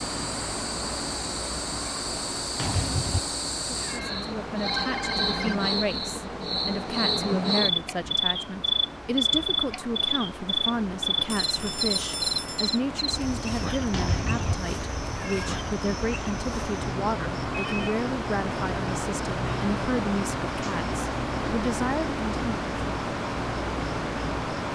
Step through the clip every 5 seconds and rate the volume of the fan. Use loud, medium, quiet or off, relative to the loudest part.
medium, medium, medium, loud, loud.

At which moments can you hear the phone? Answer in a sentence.
You can hear the phone from 4.6 to 5.5 s, from 11.2 to 12.8 s and from 17.5 to 17.9 s.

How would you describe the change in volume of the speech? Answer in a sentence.
The volume of the speech stays about the same.